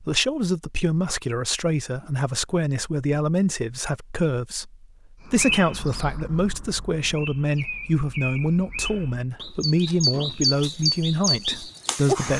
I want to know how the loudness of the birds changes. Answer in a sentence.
The volume of the birds goes up.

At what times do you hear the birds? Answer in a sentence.
You can hear the birds from 5.2 to 12.3 s.